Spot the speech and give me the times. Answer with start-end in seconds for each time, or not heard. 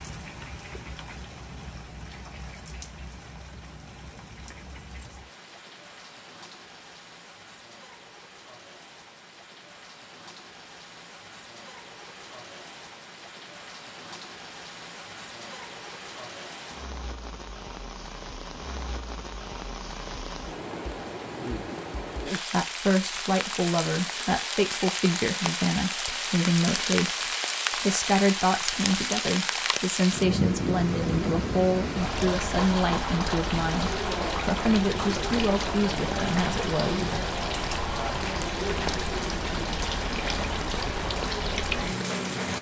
22.4-37.0.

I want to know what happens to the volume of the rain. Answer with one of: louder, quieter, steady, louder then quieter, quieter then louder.
louder.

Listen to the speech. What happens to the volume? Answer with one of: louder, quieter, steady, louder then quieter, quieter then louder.
steady.